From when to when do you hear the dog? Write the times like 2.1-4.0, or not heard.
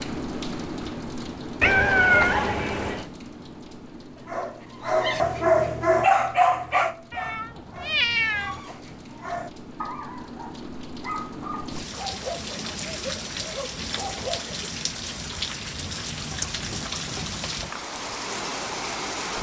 4.3-14.6.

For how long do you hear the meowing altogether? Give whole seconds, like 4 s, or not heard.
4 s.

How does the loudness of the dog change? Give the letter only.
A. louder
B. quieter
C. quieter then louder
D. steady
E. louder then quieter
B.